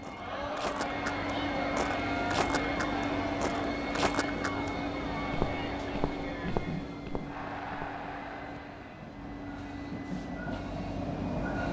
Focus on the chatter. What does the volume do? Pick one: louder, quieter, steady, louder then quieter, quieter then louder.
quieter.